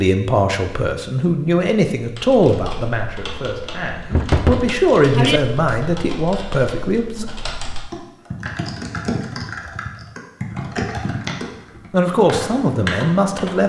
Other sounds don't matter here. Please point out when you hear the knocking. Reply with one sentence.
The knocking can be heard from 4.1 to 5.4 s.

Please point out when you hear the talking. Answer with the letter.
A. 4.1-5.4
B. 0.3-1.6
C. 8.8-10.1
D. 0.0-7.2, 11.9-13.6
D.